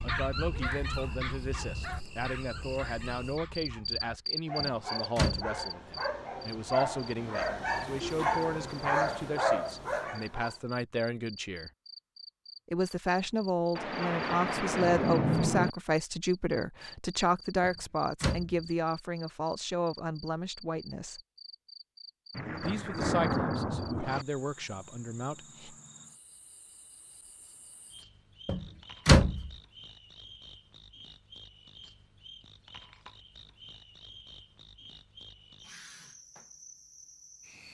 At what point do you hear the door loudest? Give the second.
29 s.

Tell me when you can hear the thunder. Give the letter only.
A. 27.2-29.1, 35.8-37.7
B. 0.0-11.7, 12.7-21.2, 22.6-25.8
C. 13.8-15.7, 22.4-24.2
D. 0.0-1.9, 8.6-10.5
C.